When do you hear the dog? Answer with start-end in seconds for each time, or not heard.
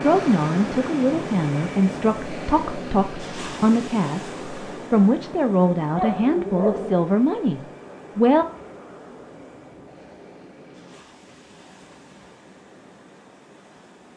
6.0-7.1.